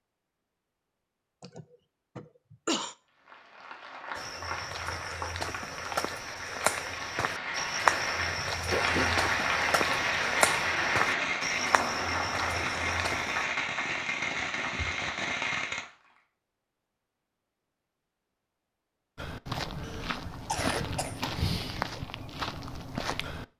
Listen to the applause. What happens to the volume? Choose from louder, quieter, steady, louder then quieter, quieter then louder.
louder then quieter.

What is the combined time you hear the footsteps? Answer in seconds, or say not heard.
14 s.